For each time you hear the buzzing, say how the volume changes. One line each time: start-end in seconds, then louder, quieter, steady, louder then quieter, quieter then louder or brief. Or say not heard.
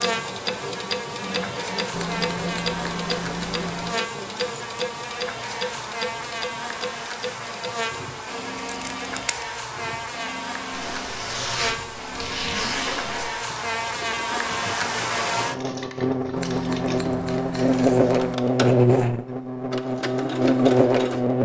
0.0-21.4 louder.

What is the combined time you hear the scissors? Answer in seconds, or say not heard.
5 s.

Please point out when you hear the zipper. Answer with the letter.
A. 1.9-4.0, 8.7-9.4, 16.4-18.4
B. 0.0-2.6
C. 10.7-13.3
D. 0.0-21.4
C.